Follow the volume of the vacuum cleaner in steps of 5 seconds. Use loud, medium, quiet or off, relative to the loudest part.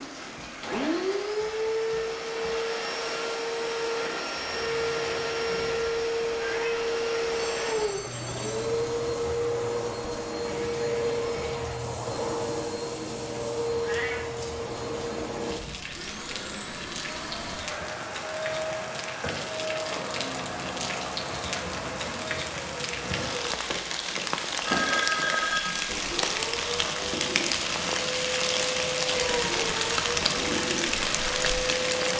loud, loud, loud, medium, medium, medium, loud.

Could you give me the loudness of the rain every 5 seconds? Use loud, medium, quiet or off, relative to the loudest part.
quiet, quiet, quiet, medium, medium, loud, loud.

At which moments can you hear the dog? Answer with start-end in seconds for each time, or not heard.
not heard.